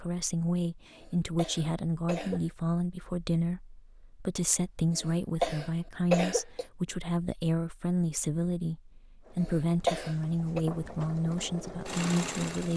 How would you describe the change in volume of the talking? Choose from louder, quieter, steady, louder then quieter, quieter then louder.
steady.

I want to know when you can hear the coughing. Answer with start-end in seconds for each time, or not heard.
0.9-2.4, 5.0-6.7, 9.4-10.6.